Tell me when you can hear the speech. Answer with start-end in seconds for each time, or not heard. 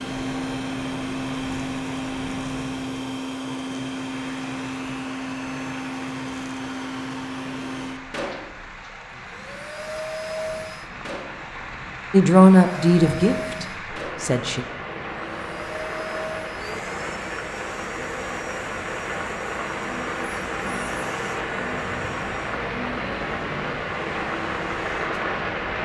12.1-14.7.